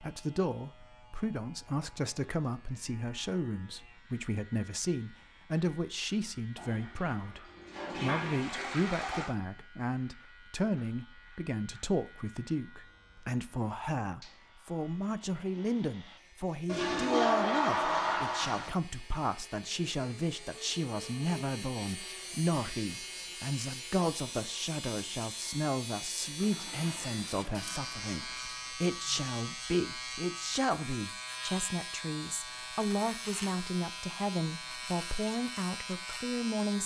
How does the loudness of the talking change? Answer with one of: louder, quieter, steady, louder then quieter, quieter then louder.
steady.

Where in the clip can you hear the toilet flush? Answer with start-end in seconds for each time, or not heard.
6.5-9.3, 16.6-18.7, 26.4-28.4.